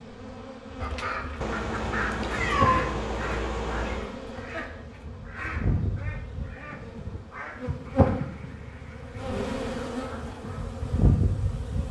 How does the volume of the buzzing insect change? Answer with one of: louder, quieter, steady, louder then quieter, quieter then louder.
louder.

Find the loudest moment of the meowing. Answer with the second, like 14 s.
3 s.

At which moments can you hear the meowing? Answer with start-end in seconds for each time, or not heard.
1.4-4.1.